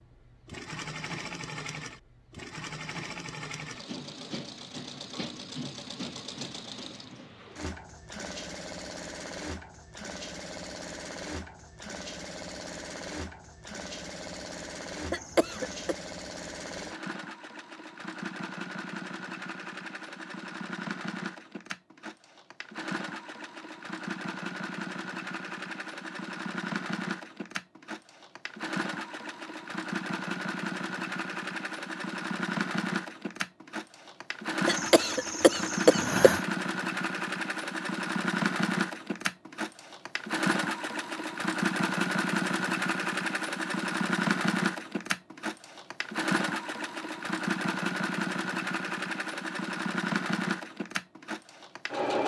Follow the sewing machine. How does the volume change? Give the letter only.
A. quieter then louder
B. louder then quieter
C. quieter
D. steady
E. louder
E.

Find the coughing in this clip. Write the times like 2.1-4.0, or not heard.
15.1-15.9, 34.6-36.4.